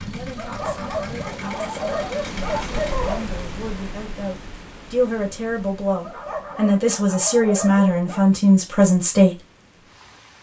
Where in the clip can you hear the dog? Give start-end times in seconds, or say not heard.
0.3-3.2, 6.0-8.2.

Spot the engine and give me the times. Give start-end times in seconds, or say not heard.
0.0-3.0.